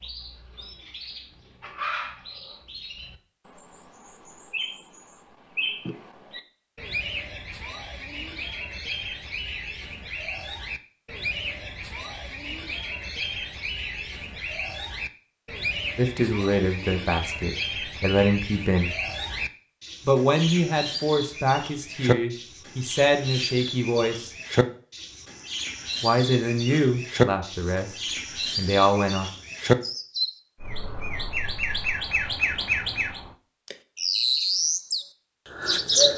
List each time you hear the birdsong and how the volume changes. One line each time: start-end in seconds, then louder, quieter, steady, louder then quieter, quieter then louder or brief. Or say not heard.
0.0-36.1 louder.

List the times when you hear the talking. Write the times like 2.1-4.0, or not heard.
15.9-18.9, 20.1-24.3, 26.0-29.3.